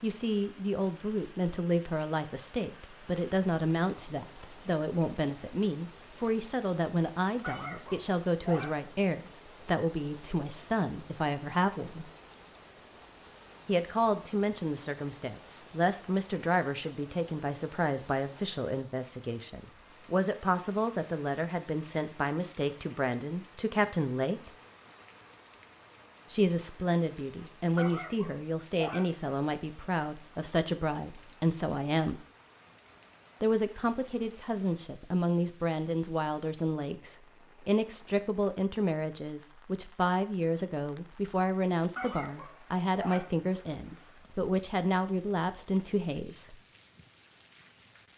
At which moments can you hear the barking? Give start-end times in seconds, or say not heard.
7.4-8.8, 27.8-29.1, 42.0-43.4.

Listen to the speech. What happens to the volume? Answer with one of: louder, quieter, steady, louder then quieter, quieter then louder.
steady.